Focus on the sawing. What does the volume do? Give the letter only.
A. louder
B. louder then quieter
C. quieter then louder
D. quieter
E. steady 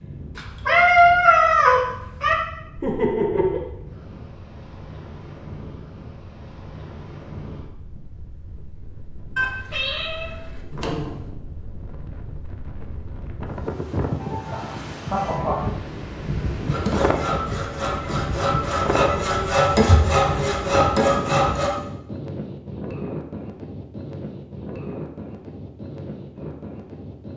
A.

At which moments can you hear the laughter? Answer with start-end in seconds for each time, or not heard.
2.8-3.6, 14.2-15.7.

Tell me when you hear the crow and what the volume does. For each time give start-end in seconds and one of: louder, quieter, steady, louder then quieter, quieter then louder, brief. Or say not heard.
not heard.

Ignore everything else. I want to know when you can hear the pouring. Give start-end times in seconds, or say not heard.
not heard.